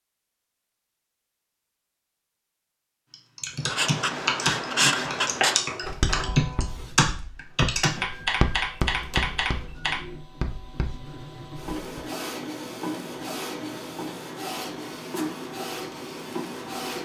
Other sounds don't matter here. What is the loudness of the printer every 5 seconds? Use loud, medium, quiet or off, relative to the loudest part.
off, medium, loud, loud.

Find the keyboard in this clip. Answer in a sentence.
The keyboard can be heard from 3.1 to 9.9 s.